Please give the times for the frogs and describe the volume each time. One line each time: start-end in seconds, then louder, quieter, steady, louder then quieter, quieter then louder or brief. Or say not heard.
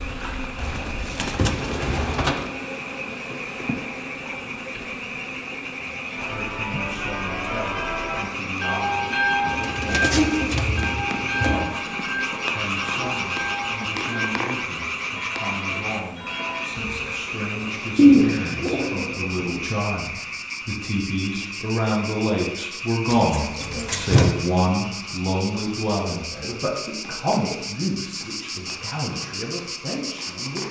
0.0-30.6 louder then quieter.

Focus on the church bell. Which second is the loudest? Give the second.
9 s.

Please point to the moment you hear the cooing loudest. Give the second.
18 s.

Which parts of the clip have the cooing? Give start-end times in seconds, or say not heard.
0.6-2.5, 9.5-11.7, 17.9-19.6, 23.1-24.3.